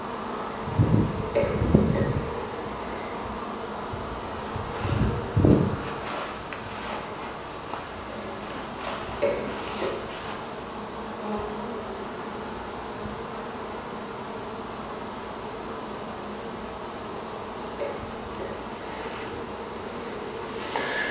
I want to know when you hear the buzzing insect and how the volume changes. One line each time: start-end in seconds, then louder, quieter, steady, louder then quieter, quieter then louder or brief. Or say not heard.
0.0-21.0 quieter.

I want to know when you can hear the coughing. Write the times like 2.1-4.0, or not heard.
1.4-2.2, 9.2-9.9, 17.8-18.6.